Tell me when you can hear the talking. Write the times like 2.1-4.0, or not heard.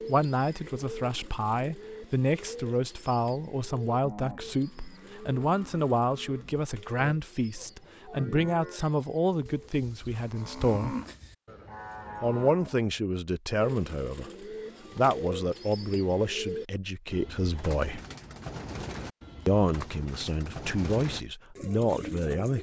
0.1-10.9, 12.2-14.3, 14.9-18.0, 19.4-22.5.